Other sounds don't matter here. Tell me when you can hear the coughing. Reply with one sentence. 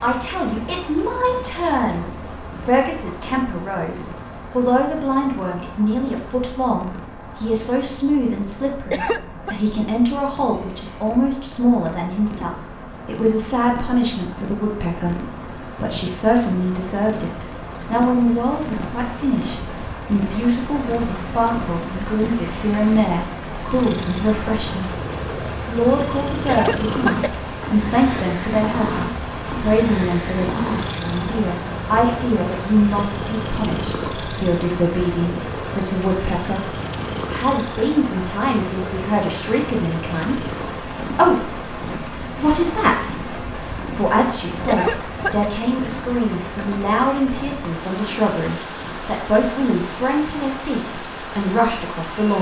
You can hear the coughing from 8.9 to 9.6 s, from 26.4 to 27.3 s and from 44.6 to 45.5 s.